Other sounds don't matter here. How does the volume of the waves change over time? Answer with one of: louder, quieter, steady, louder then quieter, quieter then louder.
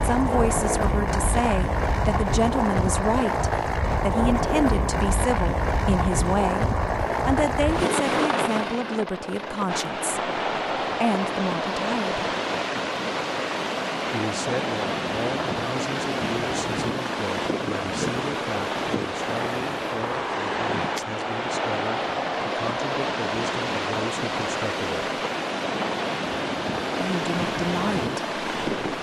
steady.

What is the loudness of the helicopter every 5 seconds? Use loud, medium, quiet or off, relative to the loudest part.
loud, loud, medium, medium, medium, medium.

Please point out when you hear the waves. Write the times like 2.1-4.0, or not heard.
9.7-28.9.